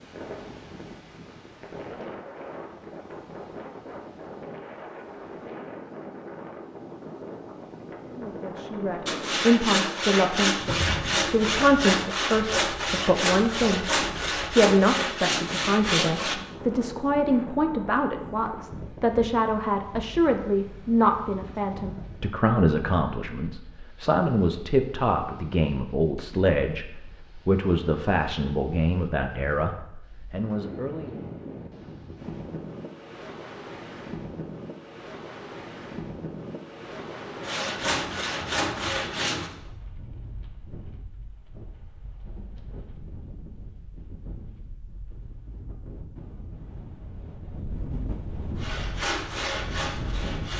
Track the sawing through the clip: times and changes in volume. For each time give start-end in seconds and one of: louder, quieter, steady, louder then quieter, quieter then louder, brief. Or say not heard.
9.1-16.4 steady
37.4-39.5 brief
48.5-50.5 brief.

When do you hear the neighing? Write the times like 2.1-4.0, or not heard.
10.6-11.2.